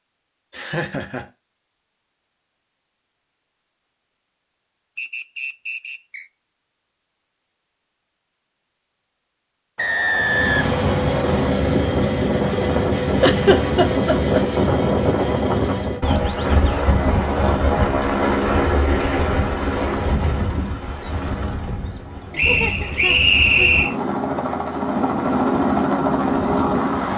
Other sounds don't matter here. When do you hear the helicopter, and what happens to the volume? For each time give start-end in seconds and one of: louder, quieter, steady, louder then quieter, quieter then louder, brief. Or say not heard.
10.1-27.1 quieter then louder.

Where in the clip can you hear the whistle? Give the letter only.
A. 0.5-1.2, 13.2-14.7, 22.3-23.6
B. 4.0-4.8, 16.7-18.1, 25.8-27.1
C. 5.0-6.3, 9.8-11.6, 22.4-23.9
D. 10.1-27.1
C.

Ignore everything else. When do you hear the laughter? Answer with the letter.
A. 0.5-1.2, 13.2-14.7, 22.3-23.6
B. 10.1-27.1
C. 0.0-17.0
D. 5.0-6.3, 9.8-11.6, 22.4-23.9
A.